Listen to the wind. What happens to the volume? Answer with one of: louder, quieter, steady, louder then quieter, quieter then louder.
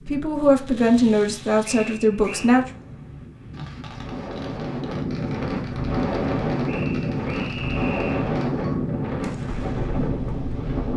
louder.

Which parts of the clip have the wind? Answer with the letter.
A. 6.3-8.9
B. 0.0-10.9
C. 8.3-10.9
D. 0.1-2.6
B.